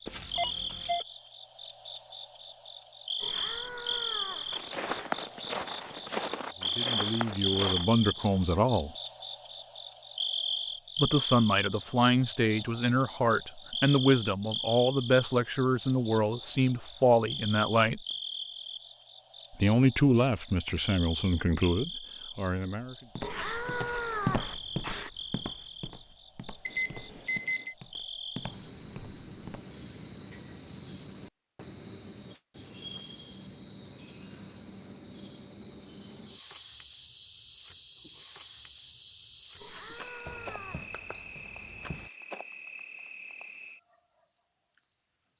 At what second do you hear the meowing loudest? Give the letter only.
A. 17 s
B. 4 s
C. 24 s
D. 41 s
C.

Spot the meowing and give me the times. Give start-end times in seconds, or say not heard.
3.2-5.1, 23.2-25.1, 39.5-41.0.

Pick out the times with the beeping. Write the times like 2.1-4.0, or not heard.
0.1-1.1, 26.6-27.8, 40.2-42.1.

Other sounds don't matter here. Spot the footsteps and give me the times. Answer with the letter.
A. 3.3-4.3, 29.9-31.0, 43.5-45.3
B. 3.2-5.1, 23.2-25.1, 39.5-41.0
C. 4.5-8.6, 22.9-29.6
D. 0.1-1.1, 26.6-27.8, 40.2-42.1
C.